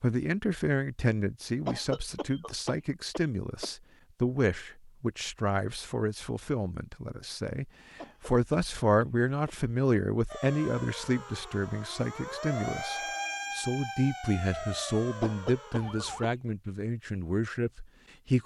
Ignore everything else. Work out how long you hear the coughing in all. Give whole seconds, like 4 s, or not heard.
5 s.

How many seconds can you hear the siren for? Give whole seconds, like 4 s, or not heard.
6 s.